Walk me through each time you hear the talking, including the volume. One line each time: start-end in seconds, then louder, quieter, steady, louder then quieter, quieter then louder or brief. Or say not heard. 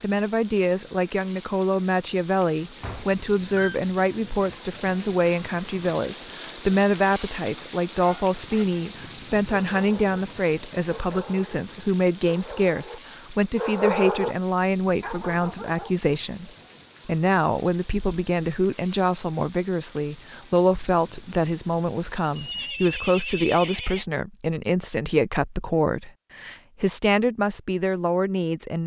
0.0-28.8 steady.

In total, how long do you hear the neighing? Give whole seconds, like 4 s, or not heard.
3 s.